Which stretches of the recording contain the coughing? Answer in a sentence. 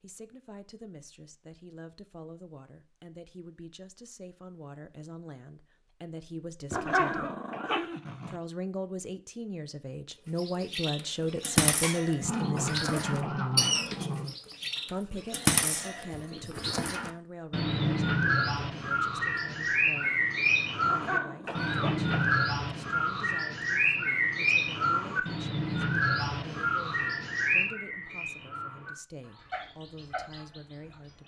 The coughing can be heard from 6.8 to 7.8 s, from 12.6 to 13.6 s and from 21.4 to 22.4 s.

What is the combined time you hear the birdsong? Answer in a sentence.
The birdsong can be heard for 21 seconds in total.